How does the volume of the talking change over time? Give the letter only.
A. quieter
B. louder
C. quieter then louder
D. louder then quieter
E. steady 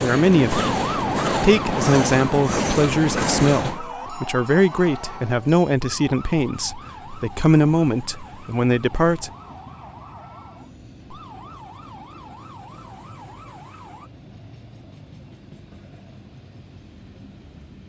E.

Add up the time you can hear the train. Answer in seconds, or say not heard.
18 s.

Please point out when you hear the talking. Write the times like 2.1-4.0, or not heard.
0.0-9.3.